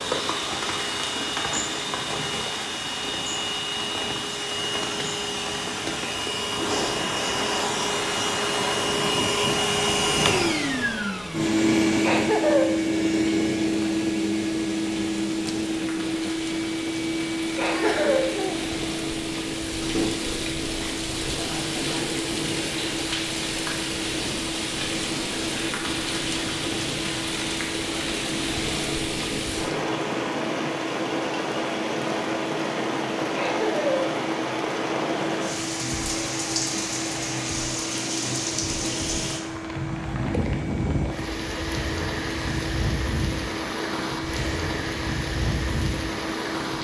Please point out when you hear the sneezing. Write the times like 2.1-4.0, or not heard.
17.6-18.2.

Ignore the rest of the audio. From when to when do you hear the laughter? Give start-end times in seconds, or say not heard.
12.0-12.7, 17.6-18.6, 33.4-34.1.